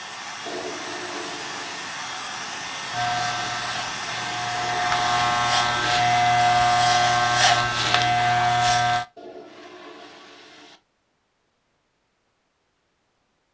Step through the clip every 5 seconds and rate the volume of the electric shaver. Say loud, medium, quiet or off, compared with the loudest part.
medium, loud, off.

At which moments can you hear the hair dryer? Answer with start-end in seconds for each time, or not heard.
0.0-8.7.